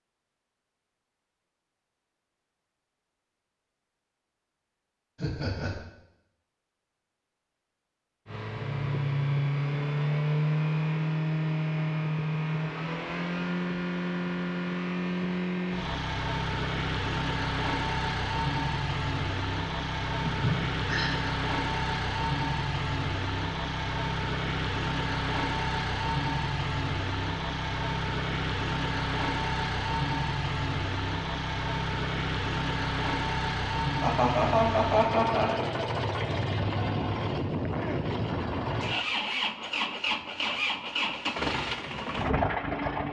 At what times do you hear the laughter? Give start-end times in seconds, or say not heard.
5.2-5.8, 20.2-21.1, 34.0-35.5.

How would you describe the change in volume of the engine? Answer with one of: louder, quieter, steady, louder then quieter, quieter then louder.
steady.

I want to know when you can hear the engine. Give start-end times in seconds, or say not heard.
8.2-43.0.